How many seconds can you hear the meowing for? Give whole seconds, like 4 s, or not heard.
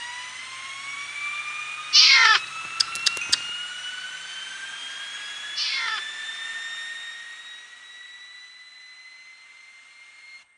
2 s.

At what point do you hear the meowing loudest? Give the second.
2 s.